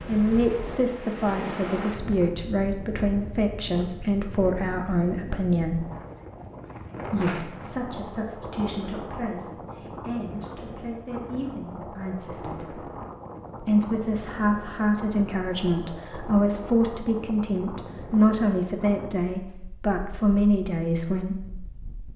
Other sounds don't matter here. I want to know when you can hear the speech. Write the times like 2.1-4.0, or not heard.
0.0-5.8, 7.0-12.8, 13.6-21.4.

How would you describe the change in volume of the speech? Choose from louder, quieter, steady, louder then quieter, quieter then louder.
quieter then louder.